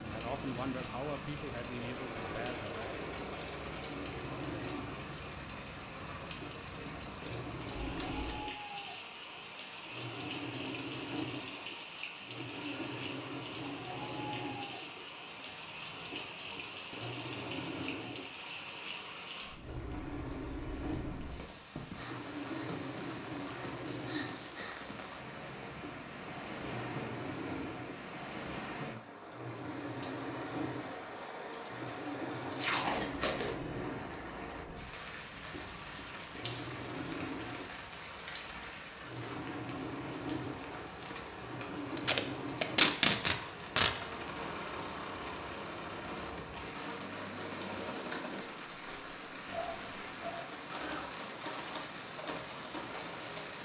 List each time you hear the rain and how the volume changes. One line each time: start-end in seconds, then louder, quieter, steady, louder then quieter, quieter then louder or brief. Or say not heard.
0.0-53.6 steady.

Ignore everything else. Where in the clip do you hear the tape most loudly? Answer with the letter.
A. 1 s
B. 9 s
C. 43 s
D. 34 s
C.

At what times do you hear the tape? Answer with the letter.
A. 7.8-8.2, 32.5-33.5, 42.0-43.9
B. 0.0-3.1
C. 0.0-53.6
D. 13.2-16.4
A.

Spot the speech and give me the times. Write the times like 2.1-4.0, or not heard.
0.0-3.1.